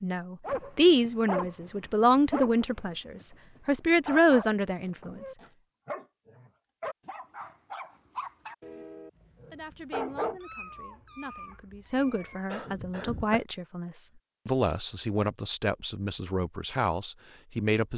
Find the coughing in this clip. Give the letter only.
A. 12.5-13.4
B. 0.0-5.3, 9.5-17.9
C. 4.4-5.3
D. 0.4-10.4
A.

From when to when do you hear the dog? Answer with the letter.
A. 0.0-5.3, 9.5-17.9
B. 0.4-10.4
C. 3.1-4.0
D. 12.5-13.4
B.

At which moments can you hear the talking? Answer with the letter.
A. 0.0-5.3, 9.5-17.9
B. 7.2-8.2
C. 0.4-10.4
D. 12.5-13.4
A.